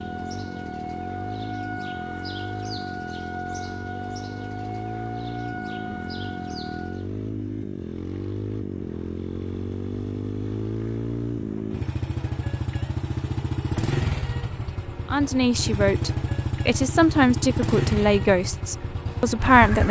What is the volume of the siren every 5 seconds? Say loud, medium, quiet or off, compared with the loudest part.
loud, loud, off, off.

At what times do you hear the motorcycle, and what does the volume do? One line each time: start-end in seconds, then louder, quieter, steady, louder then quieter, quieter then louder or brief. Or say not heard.
0.0-19.8 louder.